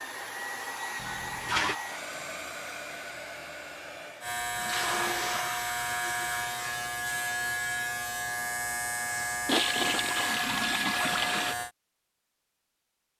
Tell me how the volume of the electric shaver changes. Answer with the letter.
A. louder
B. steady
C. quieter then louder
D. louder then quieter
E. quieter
B.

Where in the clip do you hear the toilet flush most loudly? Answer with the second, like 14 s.
10 s.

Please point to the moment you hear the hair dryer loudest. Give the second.
1 s.